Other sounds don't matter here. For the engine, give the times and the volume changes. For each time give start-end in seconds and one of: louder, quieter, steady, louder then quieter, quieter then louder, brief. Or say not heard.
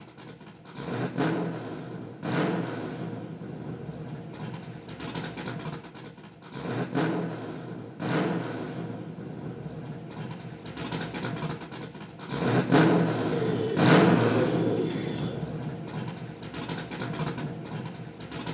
0.0-18.5 louder then quieter.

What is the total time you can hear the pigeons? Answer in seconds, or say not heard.
2 s.